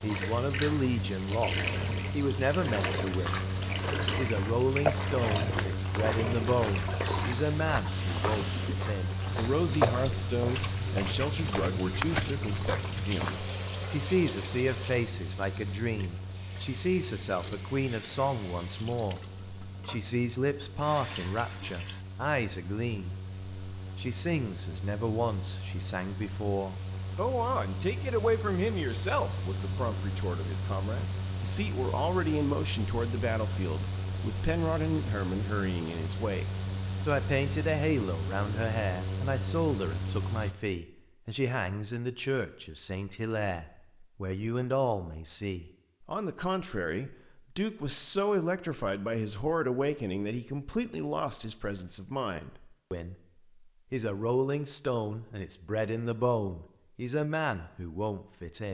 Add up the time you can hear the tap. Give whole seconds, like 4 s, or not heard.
22 s.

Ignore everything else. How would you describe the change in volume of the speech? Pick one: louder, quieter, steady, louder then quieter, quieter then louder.
steady.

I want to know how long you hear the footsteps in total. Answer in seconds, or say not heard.
11 s.